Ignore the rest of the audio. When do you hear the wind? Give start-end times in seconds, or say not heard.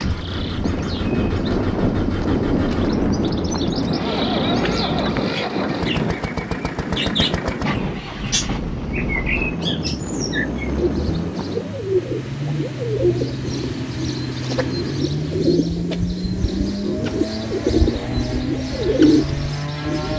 0.0-11.8.